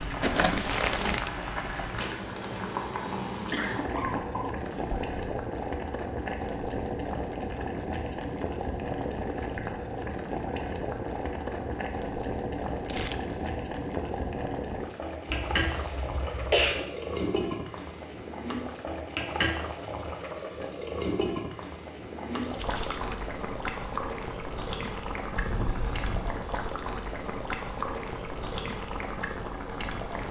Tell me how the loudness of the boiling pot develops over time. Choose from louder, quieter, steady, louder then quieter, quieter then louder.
steady.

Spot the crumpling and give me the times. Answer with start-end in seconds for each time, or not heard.
0.2-1.3, 12.8-13.4, 22.4-23.1.